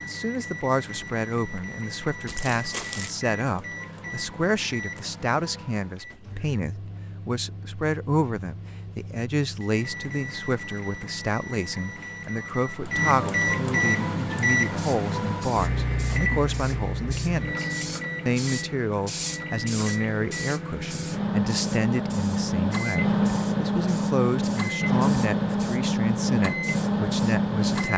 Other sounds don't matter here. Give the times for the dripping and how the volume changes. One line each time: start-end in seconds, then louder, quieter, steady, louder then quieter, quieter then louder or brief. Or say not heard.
not heard.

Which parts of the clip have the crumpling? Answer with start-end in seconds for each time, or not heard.
2.2-3.1.